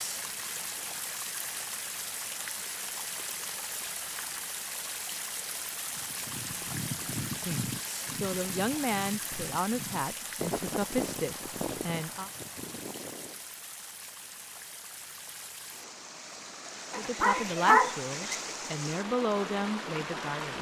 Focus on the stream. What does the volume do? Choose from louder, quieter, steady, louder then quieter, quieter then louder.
quieter then louder.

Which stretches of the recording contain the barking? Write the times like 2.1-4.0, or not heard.
16.9-18.4.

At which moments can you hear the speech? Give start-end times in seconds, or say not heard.
7.5-12.3, 16.9-20.5.